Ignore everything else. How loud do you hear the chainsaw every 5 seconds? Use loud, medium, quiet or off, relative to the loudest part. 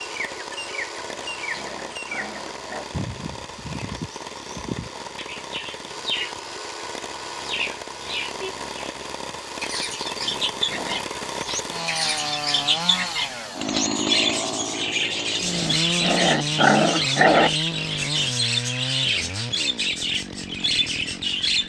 medium, medium, loud, loud, medium.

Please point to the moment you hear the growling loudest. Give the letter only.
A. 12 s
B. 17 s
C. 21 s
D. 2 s
B.